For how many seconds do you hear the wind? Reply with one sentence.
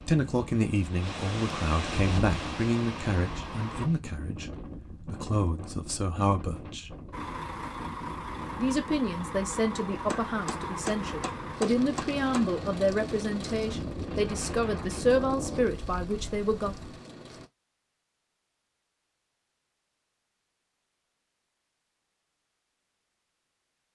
The wind can be heard for 17 seconds in total.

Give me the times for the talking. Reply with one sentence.
You can hear the talking from 0.0 to 7.0 s and from 8.6 to 16.8 s.